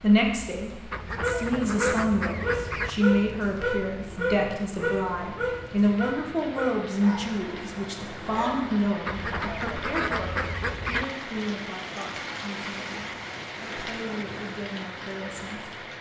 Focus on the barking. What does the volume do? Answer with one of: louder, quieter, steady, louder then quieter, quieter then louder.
quieter.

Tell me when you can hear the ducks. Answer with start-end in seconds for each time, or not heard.
0.9-2.9, 9.1-11.1.